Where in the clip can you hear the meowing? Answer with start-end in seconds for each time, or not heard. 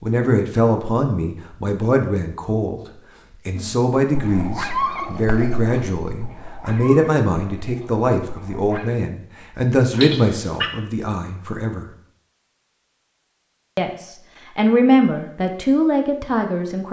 9.9-10.7.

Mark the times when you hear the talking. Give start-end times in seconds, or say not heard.
0.0-2.8, 3.5-11.8, 13.8-16.8.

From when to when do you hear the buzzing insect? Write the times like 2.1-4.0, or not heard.
not heard.